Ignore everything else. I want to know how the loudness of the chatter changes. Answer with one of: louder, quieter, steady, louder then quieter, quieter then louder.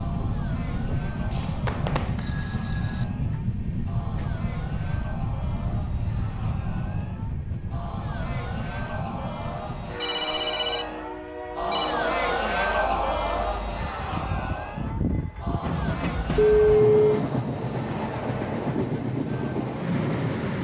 louder then quieter.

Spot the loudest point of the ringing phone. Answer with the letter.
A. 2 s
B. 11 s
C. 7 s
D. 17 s
D.